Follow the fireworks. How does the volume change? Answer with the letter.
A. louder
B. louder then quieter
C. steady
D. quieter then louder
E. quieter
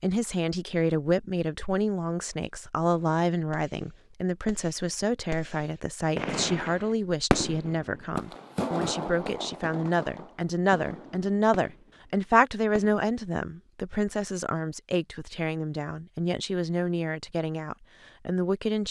B.